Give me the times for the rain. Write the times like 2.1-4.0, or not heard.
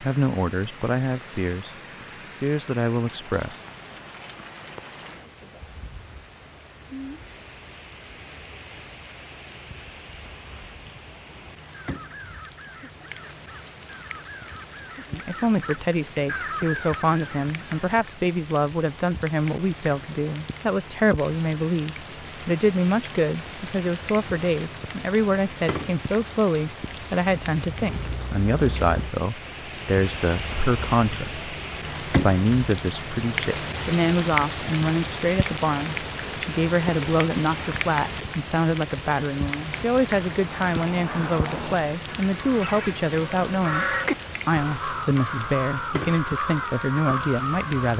0.0-47.9.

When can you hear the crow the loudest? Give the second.
44 s.